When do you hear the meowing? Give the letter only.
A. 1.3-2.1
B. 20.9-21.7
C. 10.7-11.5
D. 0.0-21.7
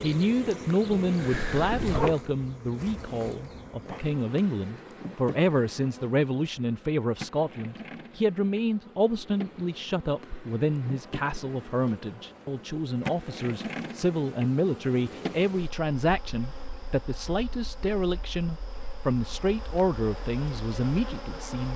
A.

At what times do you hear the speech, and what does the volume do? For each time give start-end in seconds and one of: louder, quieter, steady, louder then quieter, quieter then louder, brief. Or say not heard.
0.0-21.7 steady.